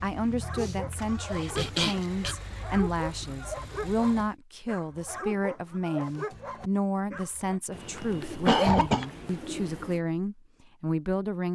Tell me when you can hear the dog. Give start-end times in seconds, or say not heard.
0.3-7.6.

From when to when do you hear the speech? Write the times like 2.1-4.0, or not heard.
0.0-11.5.